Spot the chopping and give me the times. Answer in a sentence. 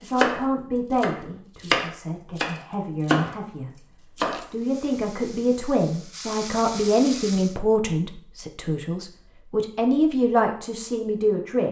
The chopping can be heard from 0.1 to 4.5 s.